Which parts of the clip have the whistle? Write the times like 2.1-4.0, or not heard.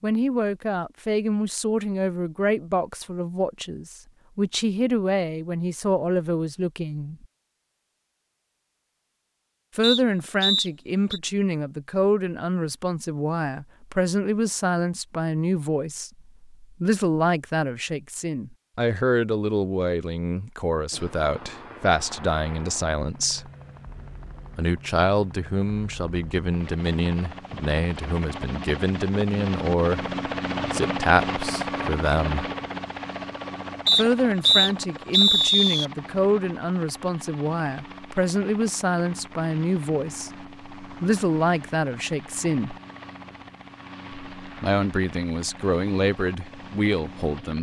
9.8-11.2, 33.9-35.9.